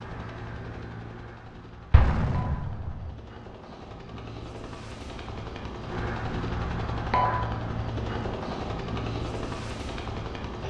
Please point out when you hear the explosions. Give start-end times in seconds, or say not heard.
1.9-3.1.